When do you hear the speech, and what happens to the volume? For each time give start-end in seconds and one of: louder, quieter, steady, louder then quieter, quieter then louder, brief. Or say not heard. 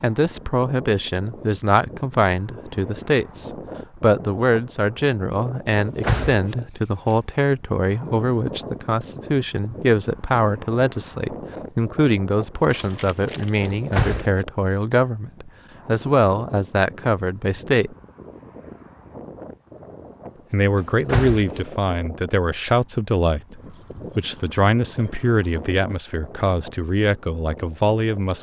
0.0-17.9 steady
20.5-28.3 steady.